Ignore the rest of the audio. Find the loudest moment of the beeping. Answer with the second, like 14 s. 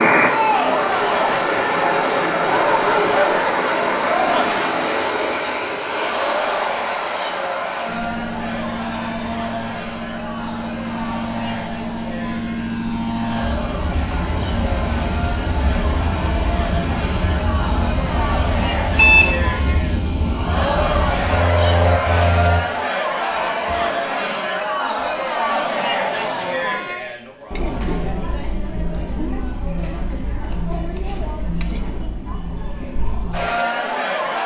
19 s.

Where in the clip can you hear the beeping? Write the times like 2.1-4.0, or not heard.
8.7-9.4, 18.9-19.4.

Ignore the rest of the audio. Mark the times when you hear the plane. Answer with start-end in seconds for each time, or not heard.
0.0-22.6.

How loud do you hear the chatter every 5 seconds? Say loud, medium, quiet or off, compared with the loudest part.
loud, medium, medium, medium, loud, loud, medium.